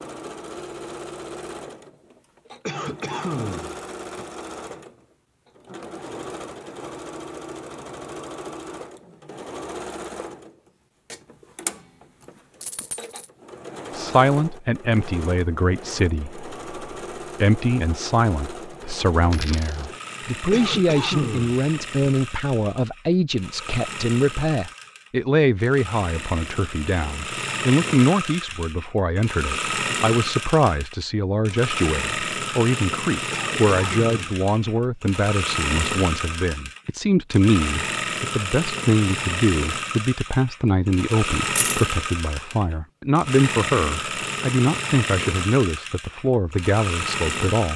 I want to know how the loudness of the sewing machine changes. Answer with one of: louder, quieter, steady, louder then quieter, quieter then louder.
louder.